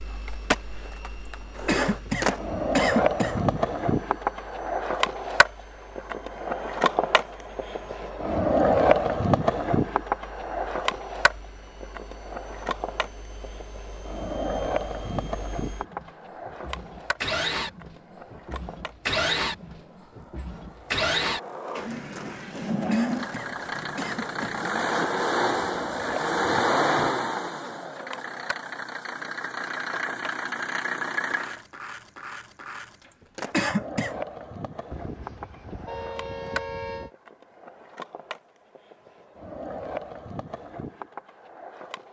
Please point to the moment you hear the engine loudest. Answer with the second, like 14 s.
27 s.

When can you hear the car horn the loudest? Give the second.
37 s.